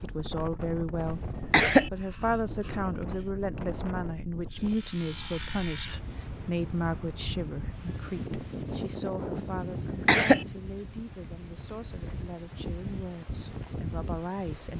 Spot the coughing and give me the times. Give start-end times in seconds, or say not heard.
1.1-1.9, 9.6-10.4.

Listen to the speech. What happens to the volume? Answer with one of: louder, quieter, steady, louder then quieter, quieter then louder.
quieter.